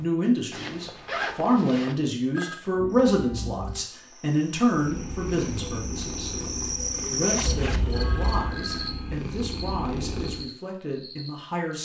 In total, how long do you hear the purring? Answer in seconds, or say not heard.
6 s.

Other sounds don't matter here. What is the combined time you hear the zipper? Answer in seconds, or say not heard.
2 s.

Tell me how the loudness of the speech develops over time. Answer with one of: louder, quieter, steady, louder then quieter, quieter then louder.
quieter.